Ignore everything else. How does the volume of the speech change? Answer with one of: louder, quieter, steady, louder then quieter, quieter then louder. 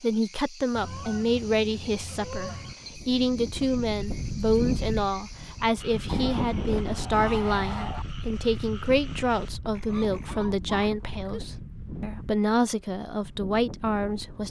steady.